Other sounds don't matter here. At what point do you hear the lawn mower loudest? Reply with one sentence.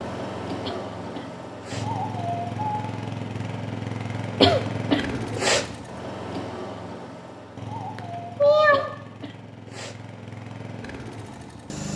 The loudest moment of the lawn mower is at 2 seconds.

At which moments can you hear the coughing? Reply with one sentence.
You can hear the coughing from 0.6 to 1.9 s, from 4.4 to 5.7 s and from 8.7 to 10.0 s.